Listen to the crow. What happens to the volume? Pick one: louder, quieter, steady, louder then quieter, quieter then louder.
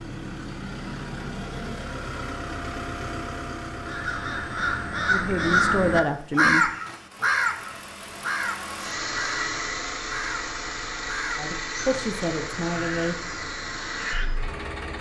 louder then quieter.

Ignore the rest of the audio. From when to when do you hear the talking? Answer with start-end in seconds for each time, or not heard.
5.0-6.7, 11.3-13.2.